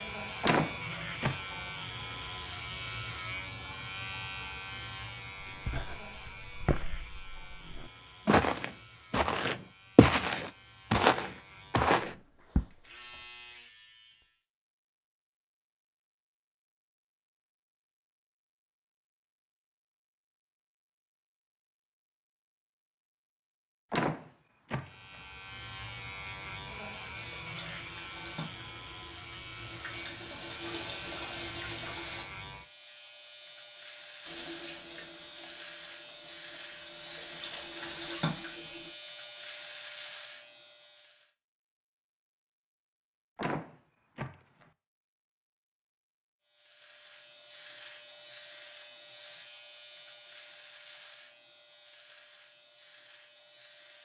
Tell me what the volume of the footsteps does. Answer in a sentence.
The loudness of the footsteps goes up.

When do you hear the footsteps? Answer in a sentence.
The footsteps can be heard from 5.4 to 12.6 s.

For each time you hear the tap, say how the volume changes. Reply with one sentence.
You can hear the tap from 27.1 to 32.2 s, getting louder; and from 34.2 to 38.9 s, getting quieter then louder.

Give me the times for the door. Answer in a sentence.
The door can be heard from 0.4 to 1.4 s, from 23.9 to 25.1 s and from 43.4 to 44.6 s.